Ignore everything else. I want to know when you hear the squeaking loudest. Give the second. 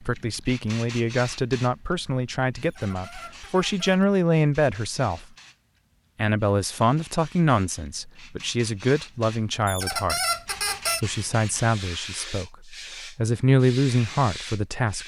10 s.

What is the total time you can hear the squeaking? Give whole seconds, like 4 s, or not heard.
3 s.